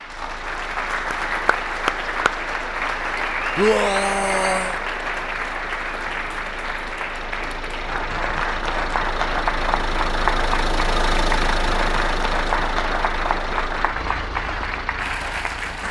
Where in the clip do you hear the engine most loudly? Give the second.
11 s.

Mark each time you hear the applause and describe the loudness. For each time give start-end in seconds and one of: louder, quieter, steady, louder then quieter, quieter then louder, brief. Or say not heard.
0.0-15.8 steady.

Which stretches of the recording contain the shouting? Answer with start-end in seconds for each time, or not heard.
3.5-4.8.